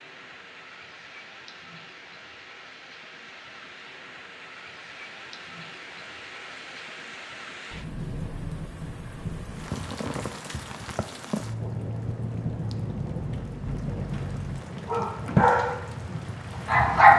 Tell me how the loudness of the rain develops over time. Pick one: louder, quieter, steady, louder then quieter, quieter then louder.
louder.